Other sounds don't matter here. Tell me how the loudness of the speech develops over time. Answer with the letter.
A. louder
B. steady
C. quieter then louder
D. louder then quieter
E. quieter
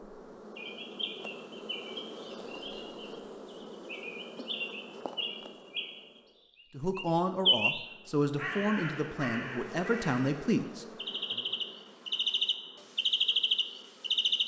B.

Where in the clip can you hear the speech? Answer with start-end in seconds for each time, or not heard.
6.7-11.4.